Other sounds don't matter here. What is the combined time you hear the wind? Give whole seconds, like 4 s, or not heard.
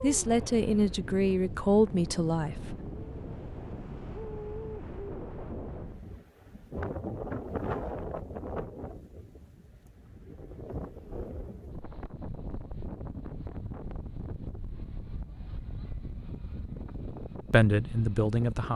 19 s.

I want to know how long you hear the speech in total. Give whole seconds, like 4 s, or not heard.
4 s.